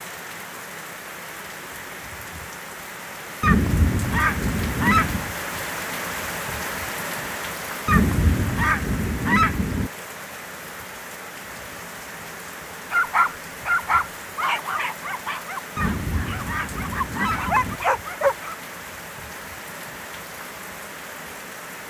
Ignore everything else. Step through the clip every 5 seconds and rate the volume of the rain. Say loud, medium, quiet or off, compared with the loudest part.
loud, loud, medium, medium, medium.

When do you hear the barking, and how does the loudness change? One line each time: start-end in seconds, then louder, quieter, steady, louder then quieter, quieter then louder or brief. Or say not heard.
12.9-18.6 quieter then louder.